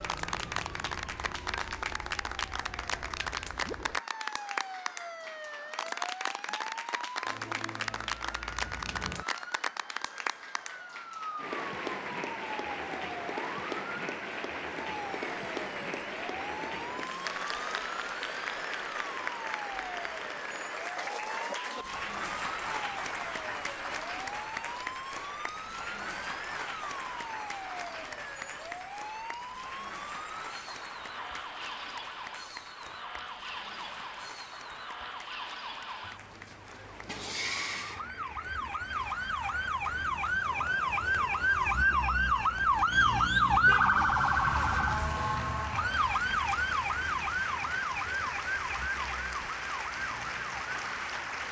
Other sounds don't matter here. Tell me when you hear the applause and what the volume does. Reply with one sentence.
The applause can be heard from 0.0 to 51.4 s, getting quieter then louder.